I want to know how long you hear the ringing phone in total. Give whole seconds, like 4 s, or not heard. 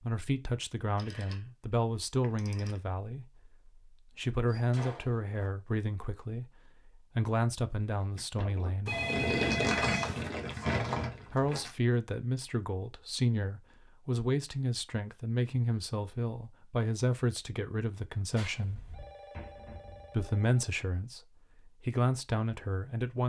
5 s.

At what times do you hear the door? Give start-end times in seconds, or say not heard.
4.5-5.5, 9.4-11.7, 18.6-20.3.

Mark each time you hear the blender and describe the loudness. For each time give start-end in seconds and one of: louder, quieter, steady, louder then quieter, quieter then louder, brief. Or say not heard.
not heard.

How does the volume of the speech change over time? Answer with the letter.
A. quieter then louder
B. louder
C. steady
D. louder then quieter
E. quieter
C.